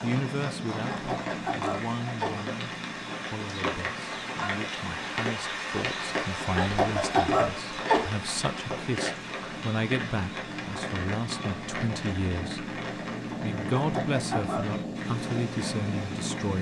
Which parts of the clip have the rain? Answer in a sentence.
The rain can be heard from 0.0 to 16.5 s.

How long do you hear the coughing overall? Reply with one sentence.
The coughing can be heard for 4 seconds in total.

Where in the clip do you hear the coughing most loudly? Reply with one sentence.
The loudest moment of the coughing is at 7 seconds.